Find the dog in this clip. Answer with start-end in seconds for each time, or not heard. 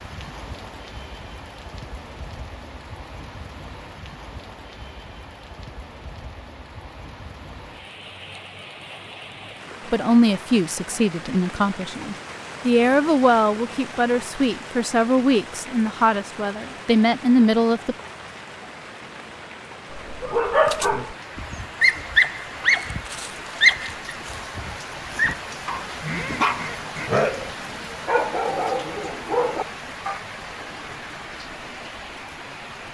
19.9-30.2.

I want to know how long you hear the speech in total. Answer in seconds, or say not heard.
8 s.